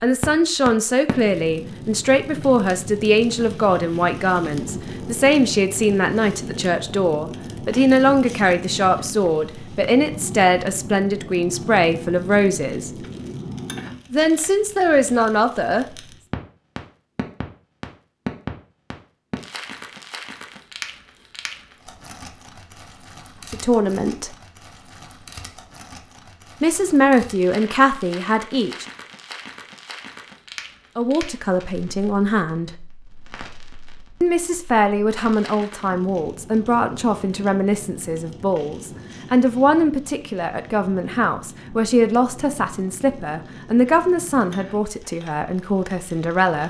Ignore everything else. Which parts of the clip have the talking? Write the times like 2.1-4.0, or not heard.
0.0-12.9, 14.1-15.8, 23.5-24.3, 26.6-28.9, 30.9-32.7, 34.2-46.6.